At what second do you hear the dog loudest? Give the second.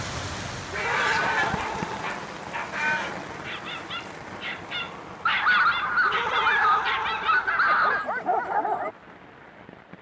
8 s.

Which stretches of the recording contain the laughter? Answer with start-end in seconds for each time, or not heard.
0.7-2.0, 6.0-7.7.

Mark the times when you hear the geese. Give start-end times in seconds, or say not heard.
0.7-1.8, 2.6-3.1, 5.2-8.1.